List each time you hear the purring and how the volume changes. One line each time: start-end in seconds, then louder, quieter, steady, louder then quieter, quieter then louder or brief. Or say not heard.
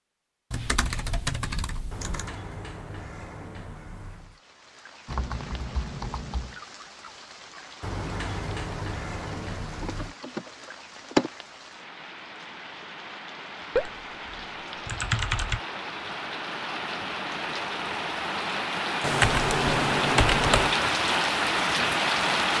not heard.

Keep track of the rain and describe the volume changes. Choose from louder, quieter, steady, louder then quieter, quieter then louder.
louder.